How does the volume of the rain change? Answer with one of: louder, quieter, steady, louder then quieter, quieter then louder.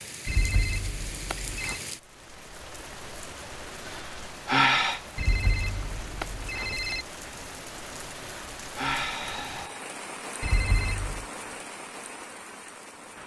steady.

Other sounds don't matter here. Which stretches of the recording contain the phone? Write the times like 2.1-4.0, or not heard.
0.2-1.8, 5.2-7.0, 10.4-11.2.